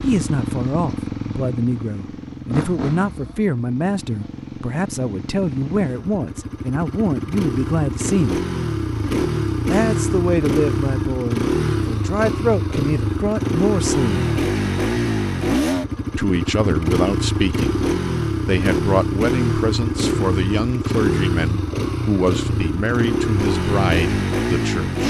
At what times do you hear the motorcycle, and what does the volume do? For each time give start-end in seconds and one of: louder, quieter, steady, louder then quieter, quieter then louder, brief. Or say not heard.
0.0-25.0 louder.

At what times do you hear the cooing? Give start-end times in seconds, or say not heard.
not heard.